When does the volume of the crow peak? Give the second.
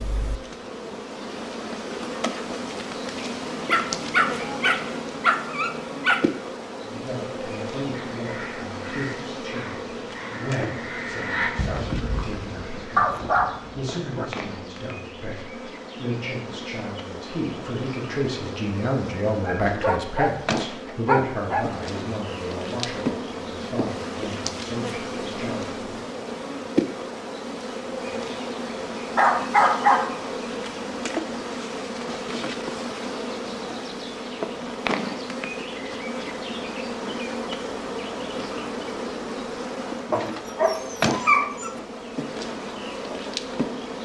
11 s.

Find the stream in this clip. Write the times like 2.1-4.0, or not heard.
not heard.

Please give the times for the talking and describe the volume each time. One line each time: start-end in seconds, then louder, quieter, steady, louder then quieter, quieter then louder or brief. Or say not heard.
6.8-26.0 louder then quieter.